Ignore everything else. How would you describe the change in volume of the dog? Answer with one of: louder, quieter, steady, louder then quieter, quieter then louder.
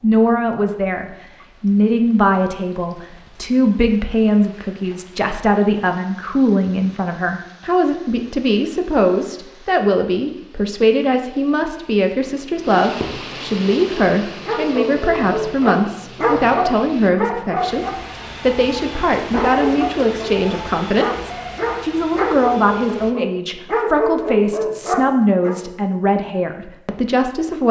steady.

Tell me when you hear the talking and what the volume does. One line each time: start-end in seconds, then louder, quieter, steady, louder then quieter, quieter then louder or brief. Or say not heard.
0.0-27.6 steady.